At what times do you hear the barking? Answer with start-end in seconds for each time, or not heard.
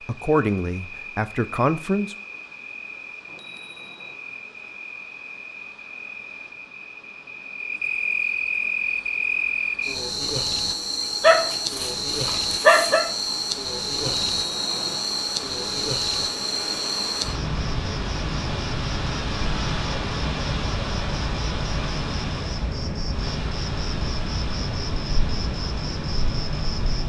11.2-13.1.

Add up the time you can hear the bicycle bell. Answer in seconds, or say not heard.
2 s.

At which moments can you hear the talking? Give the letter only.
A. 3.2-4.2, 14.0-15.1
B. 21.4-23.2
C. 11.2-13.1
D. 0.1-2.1
D.